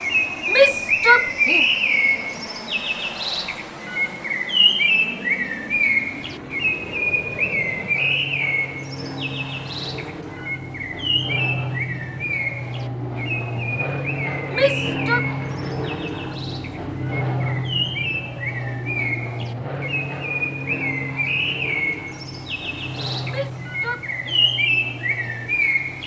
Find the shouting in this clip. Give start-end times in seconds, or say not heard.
0.5-1.6, 14.5-15.2, 23.2-24.5.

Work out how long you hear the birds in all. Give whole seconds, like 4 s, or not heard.
26 s.